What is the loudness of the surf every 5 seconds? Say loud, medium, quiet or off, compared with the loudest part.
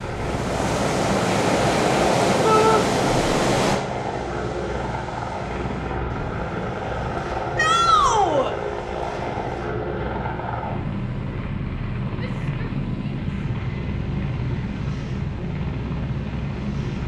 loud, quiet, quiet, quiet.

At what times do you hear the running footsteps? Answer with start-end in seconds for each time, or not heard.
not heard.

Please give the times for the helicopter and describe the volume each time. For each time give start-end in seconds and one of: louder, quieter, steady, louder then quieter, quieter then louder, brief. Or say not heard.
0.0-17.0 steady.